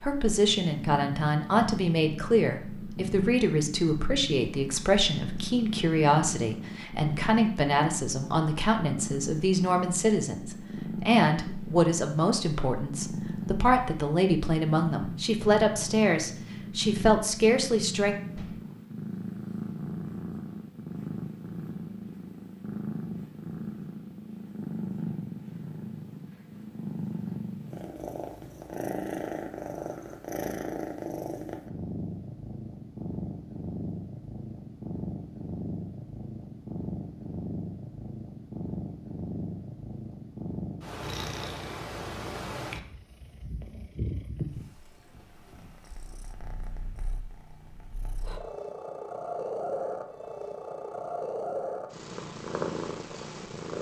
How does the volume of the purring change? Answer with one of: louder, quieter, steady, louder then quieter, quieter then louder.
steady.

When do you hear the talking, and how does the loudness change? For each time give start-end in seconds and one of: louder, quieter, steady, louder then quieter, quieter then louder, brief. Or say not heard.
0.0-18.1 steady.